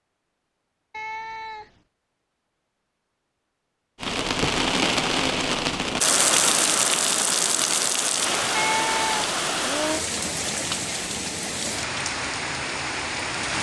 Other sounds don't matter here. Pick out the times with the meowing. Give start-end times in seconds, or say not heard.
0.9-1.8, 8.5-10.1.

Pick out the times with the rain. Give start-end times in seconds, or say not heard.
4.0-13.5.